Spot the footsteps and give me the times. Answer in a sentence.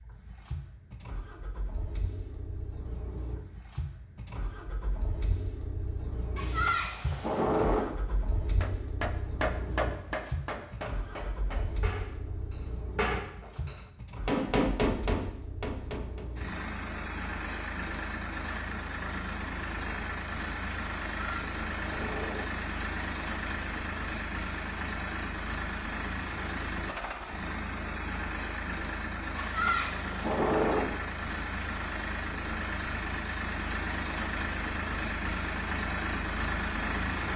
You can't hear the footsteps here.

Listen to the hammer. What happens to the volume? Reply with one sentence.
The loudness of the hammer goes down, then up.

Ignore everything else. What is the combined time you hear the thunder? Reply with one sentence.
You can hear the thunder for 4 seconds altogether.